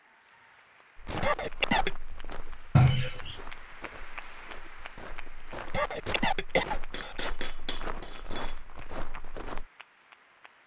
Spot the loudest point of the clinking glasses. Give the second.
3 s.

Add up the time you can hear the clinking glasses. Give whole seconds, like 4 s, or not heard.
2 s.